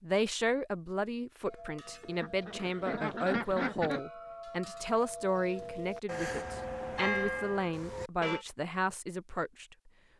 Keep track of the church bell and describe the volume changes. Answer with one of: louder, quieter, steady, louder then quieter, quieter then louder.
louder.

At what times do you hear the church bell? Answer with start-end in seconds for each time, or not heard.
1.4-8.4.